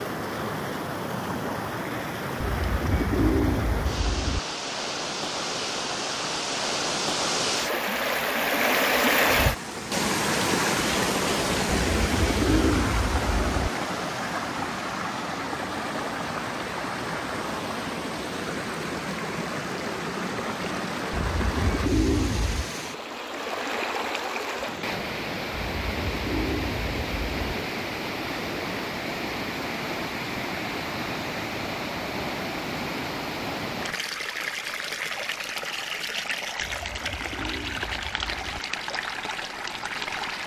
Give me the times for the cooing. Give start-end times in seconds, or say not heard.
2.4-4.4, 11.8-13.7, 21.1-22.7, 25.5-27.6, 36.6-38.6.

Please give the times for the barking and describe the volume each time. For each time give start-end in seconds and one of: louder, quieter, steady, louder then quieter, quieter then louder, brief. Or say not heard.
not heard.